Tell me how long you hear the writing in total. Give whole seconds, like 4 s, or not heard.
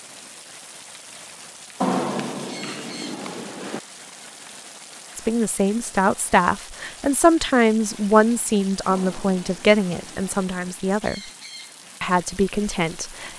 4 s.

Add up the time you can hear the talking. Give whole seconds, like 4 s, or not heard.
7 s.